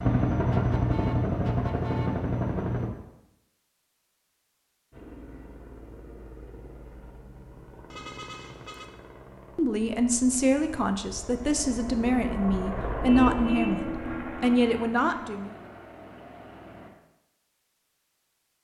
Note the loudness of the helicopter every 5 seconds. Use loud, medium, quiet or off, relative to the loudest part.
loud, quiet, medium, quiet.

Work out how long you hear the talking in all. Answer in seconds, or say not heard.
6 s.